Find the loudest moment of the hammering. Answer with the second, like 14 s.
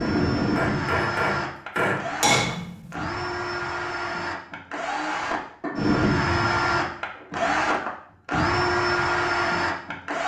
2 s.